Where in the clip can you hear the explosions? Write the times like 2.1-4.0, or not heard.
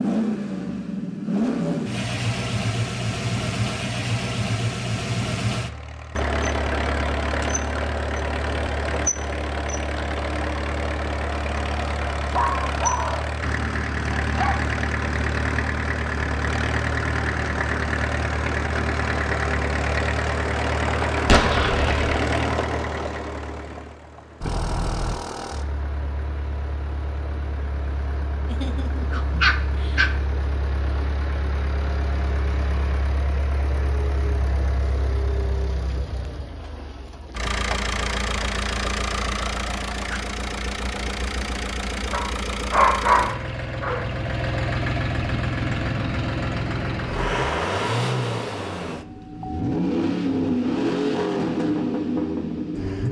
21.2-22.2.